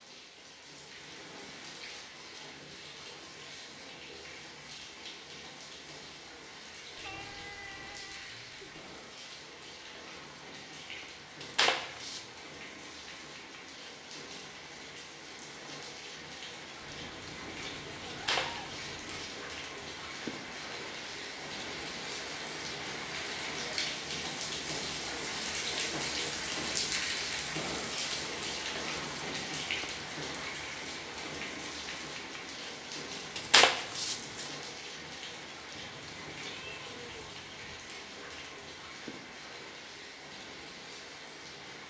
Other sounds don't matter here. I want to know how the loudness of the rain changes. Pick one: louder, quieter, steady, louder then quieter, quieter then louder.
louder then quieter.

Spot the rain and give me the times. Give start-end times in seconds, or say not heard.
0.0-41.8.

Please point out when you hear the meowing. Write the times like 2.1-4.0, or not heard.
7.0-8.8, 16.8-19.4, 35.8-37.8.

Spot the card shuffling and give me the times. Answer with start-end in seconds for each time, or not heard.
11.4-12.2, 18.1-19.3, 33.4-34.5.